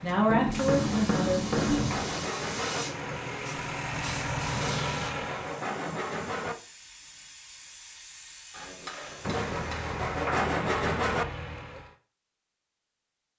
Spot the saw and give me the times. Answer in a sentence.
You can hear the saw from 0.8 to 2.9 s, from 4.5 to 6.5 s and from 9.2 to 11.2 s.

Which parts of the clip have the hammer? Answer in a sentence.
You can hear the hammer from 0.2 to 2.0 s and from 8.5 to 10.5 s.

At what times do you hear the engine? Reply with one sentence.
You can hear the engine from 0.0 to 5.8 s and from 9.3 to 11.9 s.